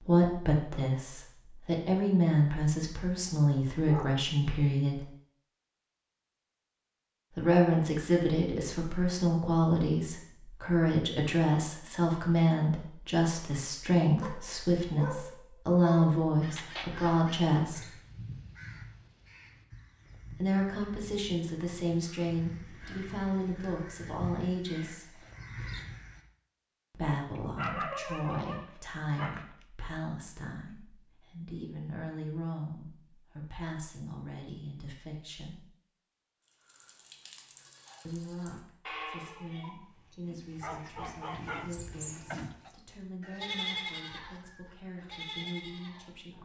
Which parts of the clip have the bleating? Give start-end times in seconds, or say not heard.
36.5-46.3.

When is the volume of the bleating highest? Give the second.
44 s.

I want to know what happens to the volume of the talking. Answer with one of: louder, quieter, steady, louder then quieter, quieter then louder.
quieter.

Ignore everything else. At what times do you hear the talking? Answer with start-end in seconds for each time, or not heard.
0.0-5.0, 7.3-17.9, 20.3-25.1, 26.9-35.6, 38.0-46.3.